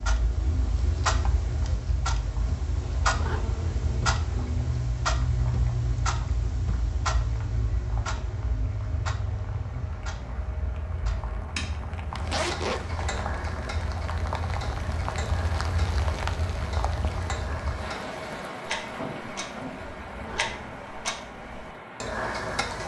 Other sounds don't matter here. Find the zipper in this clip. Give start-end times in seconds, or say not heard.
2.8-4.8, 12.1-13.2, 20.0-20.8.